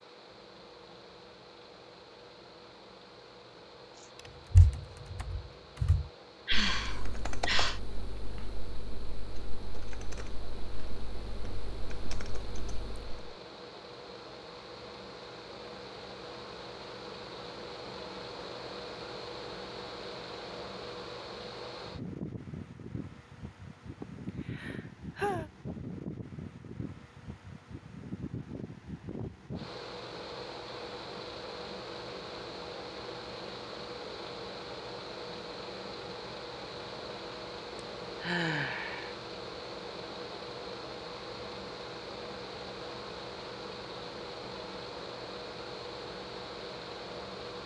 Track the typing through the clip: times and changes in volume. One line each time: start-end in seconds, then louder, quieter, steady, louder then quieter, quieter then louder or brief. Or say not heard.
4.5-13.3 quieter.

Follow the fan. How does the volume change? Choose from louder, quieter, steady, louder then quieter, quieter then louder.
louder.